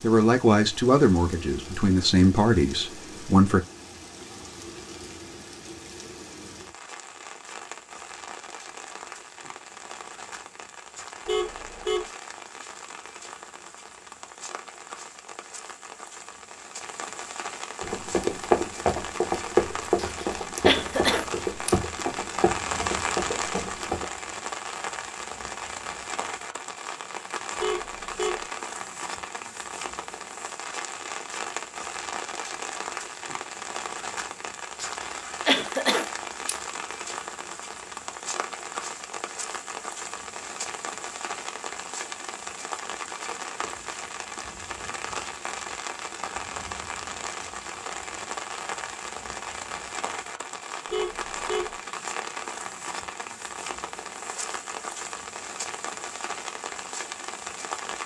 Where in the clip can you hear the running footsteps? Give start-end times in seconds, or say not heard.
17.8-24.1.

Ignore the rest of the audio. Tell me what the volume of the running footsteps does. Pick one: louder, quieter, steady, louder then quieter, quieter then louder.
quieter.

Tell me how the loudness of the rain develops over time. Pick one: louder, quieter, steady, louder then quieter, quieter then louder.
louder.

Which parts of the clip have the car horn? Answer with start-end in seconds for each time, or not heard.
11.2-12.1, 27.6-28.4, 50.9-51.8.